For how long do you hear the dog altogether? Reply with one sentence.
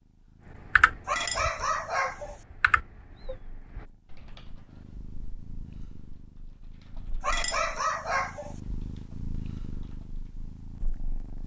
The dog can be heard for 3 seconds in total.